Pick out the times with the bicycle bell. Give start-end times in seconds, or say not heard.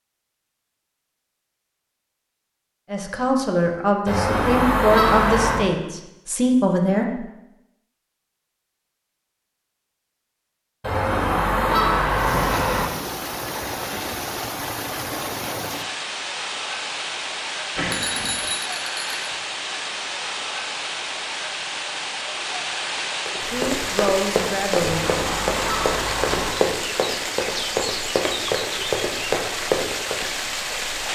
17.8-19.2.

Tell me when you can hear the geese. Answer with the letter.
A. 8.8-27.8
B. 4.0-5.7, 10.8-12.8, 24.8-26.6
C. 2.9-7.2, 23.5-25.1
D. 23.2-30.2
B.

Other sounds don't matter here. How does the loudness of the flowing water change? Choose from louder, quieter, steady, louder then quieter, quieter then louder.
steady.